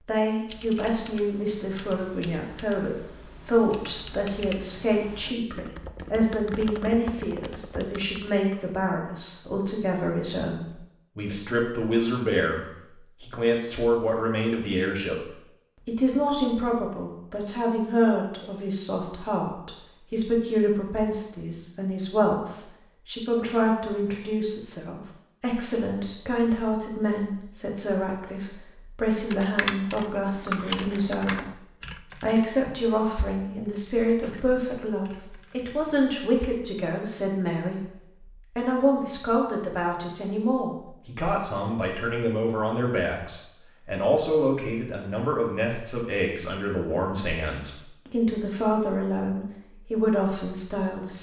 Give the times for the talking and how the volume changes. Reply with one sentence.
You can hear the talking from 0.1 to 31.6 s, at a steady volume; and from 32.2 to 51.1 s, at a steady volume.